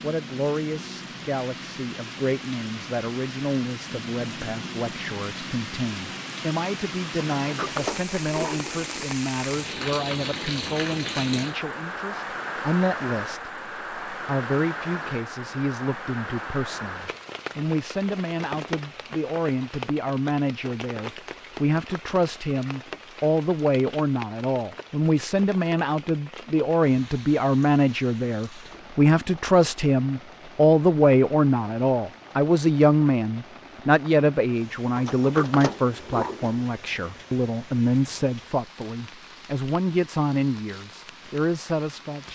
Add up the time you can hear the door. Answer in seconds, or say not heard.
3 s.